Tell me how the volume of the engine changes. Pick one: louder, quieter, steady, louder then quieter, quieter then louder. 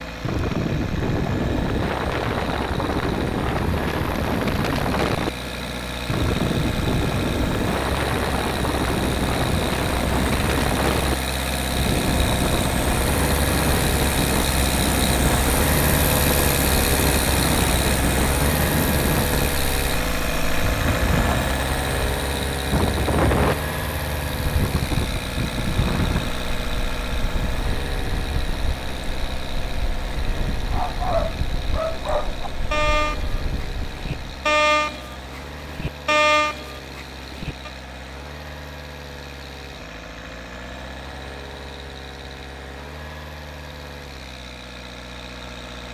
louder then quieter.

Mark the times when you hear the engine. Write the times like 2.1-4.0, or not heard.
0.0-45.8.